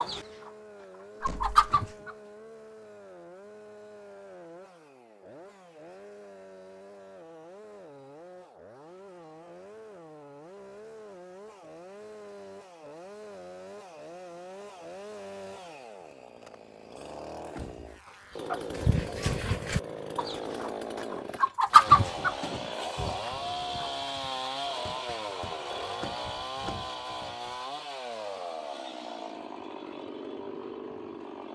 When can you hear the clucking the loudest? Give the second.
22 s.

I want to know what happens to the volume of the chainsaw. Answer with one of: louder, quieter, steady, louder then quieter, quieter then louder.
louder.